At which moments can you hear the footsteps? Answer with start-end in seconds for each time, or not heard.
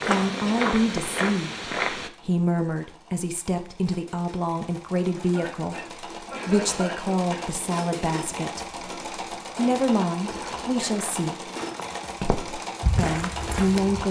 0.0-2.1, 10.2-14.0.